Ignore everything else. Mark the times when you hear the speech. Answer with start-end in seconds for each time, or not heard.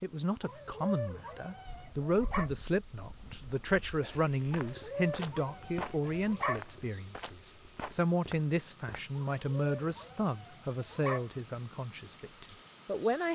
0.0-13.3.